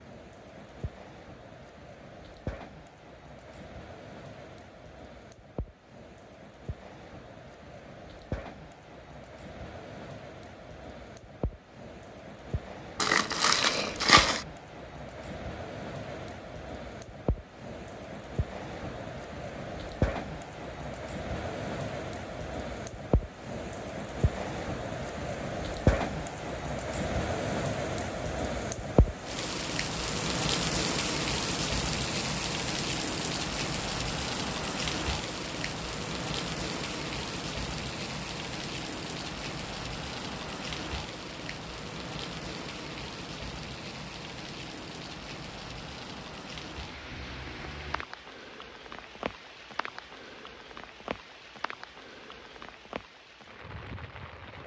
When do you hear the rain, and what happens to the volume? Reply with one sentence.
You can hear the rain from 0.0 to 54.6 s, getting louder then quieter.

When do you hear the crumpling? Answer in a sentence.
You can hear the crumpling from 13.0 to 14.4 s.